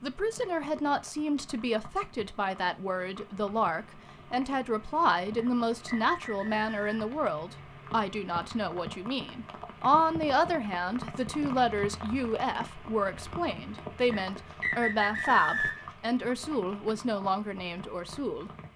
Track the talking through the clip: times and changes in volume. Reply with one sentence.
You can hear the talking from 0.0 to 18.5 s, at a steady volume.